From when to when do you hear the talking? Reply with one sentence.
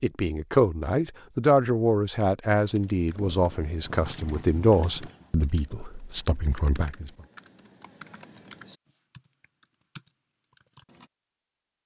You can hear the talking from 0.0 to 7.1 s.